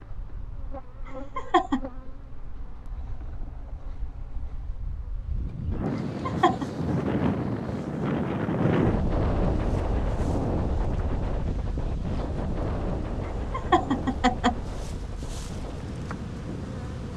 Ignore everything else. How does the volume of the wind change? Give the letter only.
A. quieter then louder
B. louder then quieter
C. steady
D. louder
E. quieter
B.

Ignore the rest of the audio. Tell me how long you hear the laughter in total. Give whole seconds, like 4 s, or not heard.
2 s.